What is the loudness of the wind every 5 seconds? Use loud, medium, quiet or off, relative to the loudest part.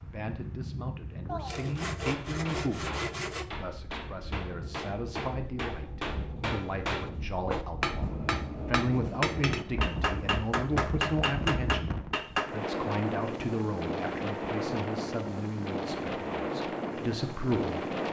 medium, medium, loud, loud.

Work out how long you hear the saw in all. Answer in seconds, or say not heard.
2 s.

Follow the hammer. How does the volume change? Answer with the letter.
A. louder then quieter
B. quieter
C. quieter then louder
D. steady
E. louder
E.